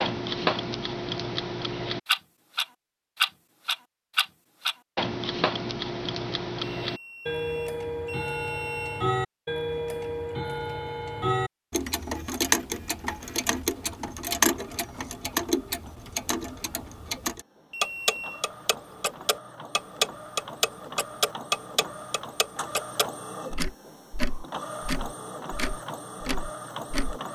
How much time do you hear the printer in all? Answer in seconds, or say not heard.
15 s.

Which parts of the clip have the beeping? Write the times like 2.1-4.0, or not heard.
6.8-9.1, 17.7-18.4.